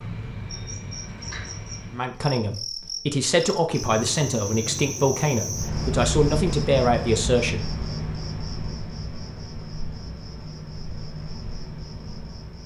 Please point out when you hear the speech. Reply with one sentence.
You can hear the speech from 1.9 to 7.7 s.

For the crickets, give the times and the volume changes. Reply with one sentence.
The crickets can be heard from 0.0 to 12.6 s, getting louder then quieter.